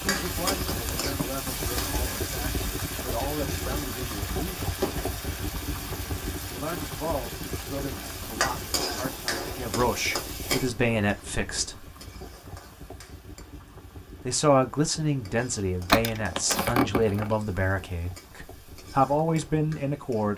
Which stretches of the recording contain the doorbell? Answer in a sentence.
The doorbell can be heard from 15.8 to 17.4 s.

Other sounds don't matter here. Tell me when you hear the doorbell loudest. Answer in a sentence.
The volume of the doorbell peaks at 16 seconds.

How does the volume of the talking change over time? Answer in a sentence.
The loudness of the talking goes up.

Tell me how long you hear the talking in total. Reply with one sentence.
The talking can be heard for 16 seconds in total.